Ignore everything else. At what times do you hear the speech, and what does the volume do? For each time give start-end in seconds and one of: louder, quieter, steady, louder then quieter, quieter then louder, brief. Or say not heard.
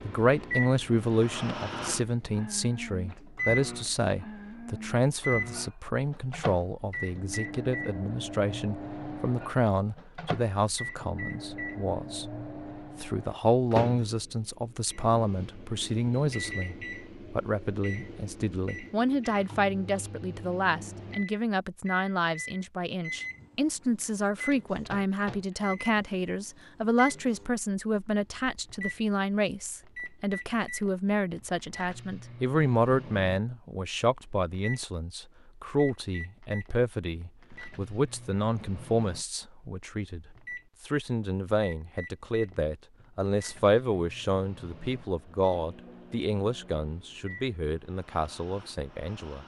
0.0-12.3 steady
13.0-49.4 steady.